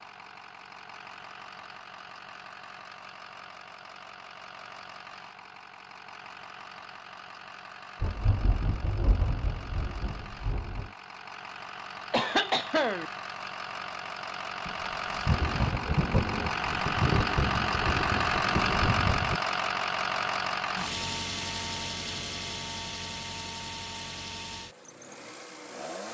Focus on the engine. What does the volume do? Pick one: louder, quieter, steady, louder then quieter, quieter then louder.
louder then quieter.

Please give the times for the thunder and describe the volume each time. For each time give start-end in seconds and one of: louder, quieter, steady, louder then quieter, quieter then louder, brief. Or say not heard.
8.0-10.9 brief
14.7-19.4 steady.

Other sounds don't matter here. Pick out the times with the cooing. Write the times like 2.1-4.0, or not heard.
not heard.